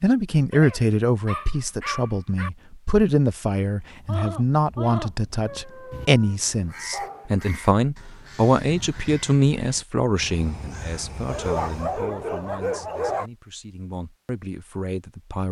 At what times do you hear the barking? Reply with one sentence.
The barking can be heard from 0.5 to 2.5 s, from 5.5 to 7.3 s and from 11.2 to 13.3 s.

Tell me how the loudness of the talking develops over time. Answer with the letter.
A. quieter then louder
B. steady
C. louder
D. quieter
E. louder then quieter
D.